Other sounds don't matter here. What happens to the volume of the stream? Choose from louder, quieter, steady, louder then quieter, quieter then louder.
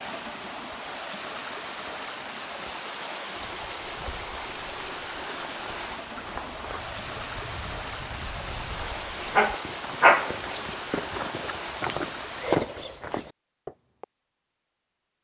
steady.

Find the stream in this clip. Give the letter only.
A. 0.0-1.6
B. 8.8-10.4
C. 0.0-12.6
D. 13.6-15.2
C.